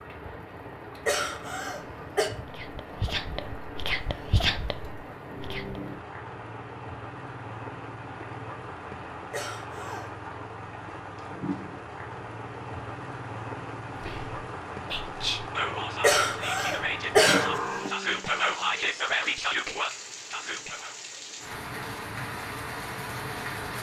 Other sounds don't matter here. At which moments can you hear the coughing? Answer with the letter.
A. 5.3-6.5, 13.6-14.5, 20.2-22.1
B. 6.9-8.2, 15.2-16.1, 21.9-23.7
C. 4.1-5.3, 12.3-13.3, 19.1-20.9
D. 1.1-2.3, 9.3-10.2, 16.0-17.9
D.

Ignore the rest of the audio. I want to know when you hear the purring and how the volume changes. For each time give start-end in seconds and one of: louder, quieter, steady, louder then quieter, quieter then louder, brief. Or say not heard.
not heard.